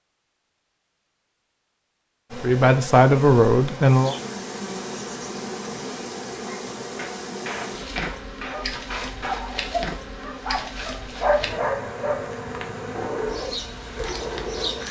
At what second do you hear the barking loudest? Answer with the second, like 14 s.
11 s.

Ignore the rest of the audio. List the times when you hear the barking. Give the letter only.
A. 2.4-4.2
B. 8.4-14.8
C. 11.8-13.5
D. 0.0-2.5
B.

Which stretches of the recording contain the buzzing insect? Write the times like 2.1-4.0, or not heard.
2.3-14.8.